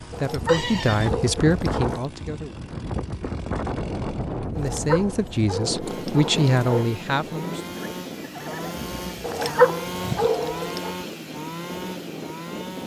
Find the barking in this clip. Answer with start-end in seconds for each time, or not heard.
0.1-2.0, 4.5-6.8, 9.2-10.9.